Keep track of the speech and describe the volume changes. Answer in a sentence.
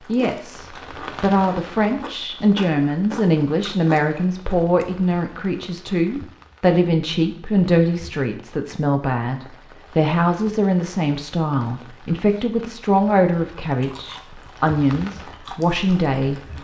The volume of the speech stays about the same.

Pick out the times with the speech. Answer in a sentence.
The speech can be heard from 0.1 to 16.4 s.